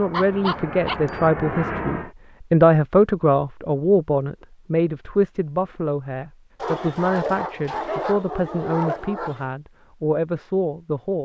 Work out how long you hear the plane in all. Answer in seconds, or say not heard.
2 s.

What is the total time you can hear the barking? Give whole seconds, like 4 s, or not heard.
4 s.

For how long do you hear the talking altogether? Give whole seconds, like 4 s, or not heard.
11 s.